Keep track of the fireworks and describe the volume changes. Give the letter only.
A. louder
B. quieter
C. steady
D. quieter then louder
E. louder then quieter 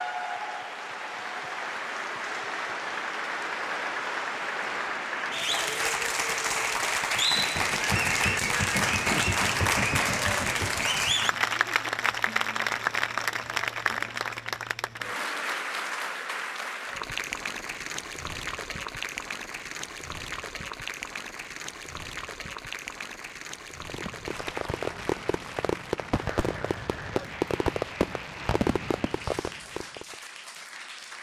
C.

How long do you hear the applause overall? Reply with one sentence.
The applause can be heard for 31 seconds in total.